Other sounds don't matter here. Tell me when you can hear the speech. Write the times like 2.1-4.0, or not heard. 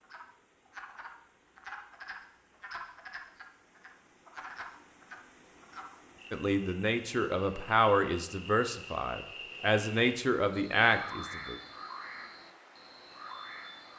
6.3-11.6.